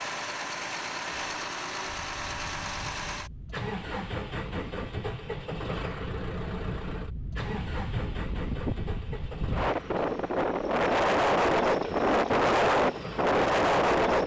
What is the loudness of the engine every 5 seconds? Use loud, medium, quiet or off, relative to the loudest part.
loud, loud, medium.